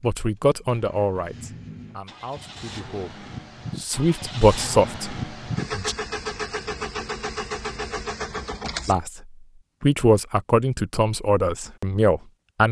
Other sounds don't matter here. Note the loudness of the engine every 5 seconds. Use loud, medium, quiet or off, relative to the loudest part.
medium, loud, off.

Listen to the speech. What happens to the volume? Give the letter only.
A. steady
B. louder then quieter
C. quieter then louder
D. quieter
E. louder
C.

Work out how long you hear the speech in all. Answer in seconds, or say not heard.
10 s.